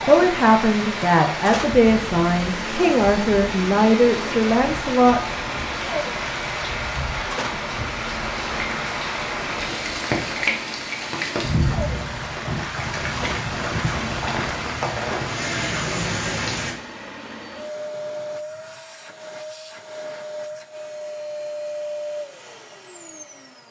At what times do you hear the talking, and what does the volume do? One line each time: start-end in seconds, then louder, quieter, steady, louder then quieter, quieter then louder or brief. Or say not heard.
0.0-5.2 steady.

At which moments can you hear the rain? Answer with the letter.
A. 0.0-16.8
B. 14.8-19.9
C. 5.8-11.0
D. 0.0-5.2
A.